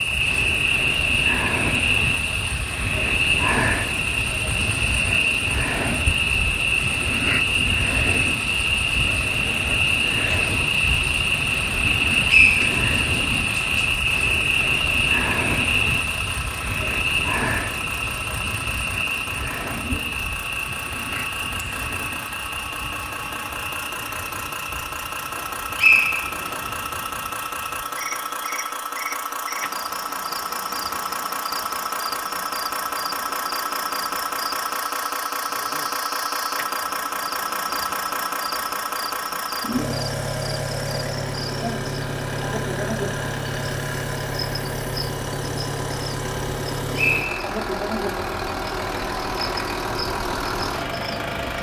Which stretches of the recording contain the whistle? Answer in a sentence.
You can hear the whistle from 12.2 to 12.7 s, from 25.8 to 26.6 s and from 47.0 to 47.4 s.